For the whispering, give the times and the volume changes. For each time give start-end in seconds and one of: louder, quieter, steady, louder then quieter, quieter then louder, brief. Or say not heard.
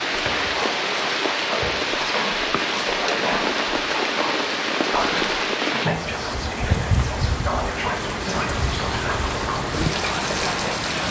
0.0-11.0 steady.